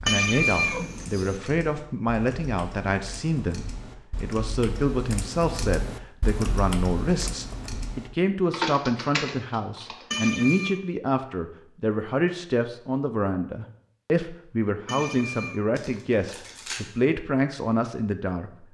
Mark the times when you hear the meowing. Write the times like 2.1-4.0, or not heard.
0.1-1.4, 10.1-10.8, 14.8-15.6.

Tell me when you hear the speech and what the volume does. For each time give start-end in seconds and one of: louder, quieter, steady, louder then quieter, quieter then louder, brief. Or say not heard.
0.0-18.6 steady.